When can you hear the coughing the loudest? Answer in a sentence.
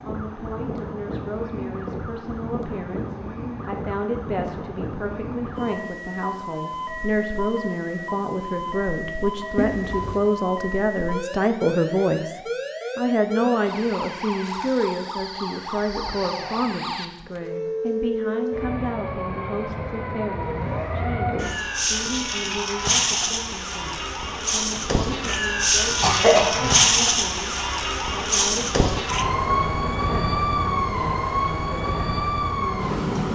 The volume of the coughing peaks at 26 seconds.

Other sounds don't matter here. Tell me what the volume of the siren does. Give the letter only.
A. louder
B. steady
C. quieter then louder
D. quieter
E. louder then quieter
A.